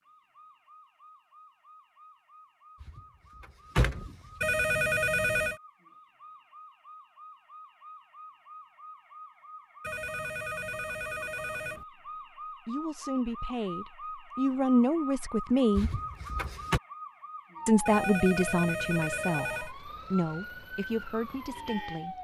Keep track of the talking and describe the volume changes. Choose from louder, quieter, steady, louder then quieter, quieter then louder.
louder then quieter.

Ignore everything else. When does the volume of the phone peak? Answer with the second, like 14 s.
5 s.